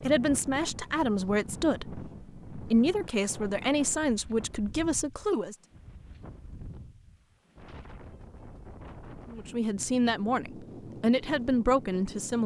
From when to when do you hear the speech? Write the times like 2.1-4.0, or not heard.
0.0-5.5, 9.3-12.4.